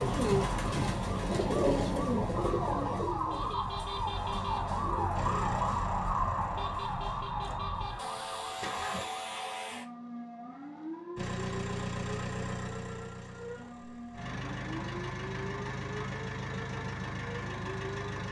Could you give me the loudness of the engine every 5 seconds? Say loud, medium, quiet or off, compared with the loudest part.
off, loud, loud, loud.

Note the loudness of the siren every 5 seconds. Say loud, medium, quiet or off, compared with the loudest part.
loud, loud, medium, medium.